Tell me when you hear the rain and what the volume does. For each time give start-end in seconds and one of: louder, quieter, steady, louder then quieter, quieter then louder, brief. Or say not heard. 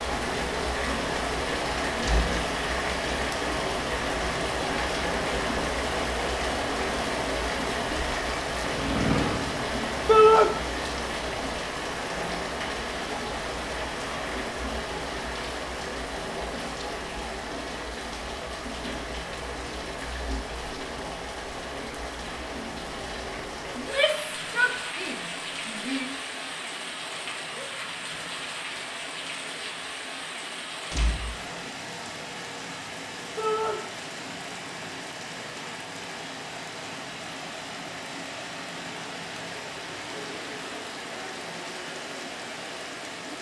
0.0-43.3 quieter.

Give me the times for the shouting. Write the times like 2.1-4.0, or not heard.
10.1-10.5, 23.8-26.1, 33.4-33.8.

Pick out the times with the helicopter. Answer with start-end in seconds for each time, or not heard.
8.6-10.6.